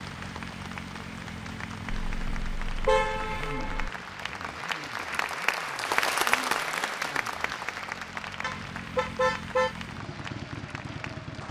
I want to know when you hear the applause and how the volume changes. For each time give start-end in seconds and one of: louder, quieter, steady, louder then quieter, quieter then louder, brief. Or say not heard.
0.0-11.4 louder then quieter.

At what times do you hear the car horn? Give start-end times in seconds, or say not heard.
2.0-3.9, 8.4-9.8.